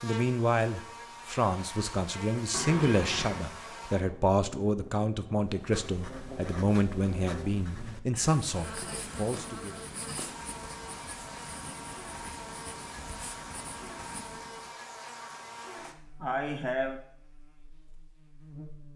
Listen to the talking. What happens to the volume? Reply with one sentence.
The volume of the talking stays about the same.